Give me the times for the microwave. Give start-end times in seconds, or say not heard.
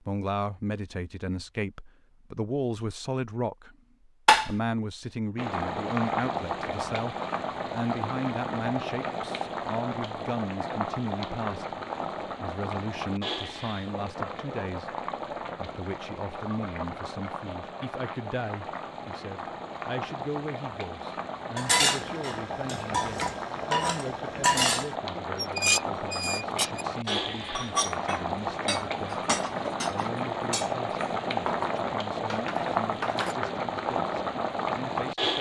not heard.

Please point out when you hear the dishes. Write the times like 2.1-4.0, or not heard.
21.6-33.4.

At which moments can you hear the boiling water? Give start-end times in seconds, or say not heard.
5.3-35.3.